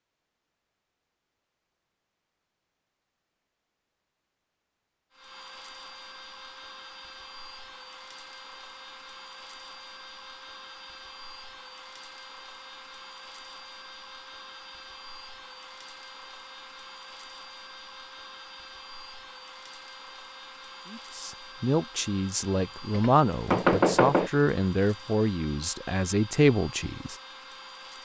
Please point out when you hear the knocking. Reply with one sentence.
The knocking can be heard from 22.9 to 24.3 s.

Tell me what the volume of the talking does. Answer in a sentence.
The loudness of the talking stays about the same.